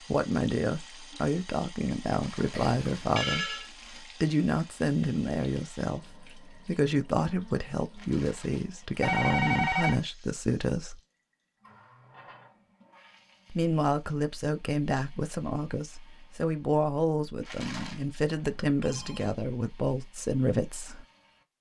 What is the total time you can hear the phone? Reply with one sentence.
The phone can be heard for 3 seconds in total.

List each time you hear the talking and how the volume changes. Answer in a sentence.
The talking can be heard from 0.1 to 11.0 s, at a steady volume; and from 13.5 to 21.5 s, at a steady volume.